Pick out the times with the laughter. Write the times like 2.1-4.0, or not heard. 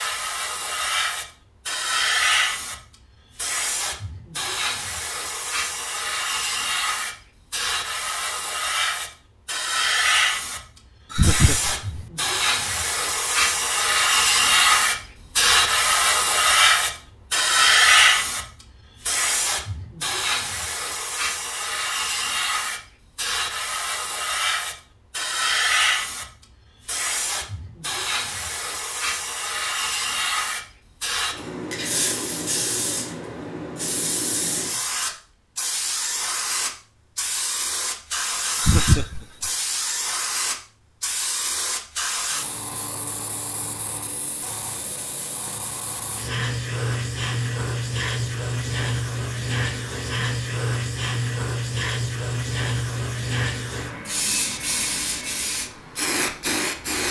11.1-12.0, 38.5-39.5.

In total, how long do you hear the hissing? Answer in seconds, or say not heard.
57 s.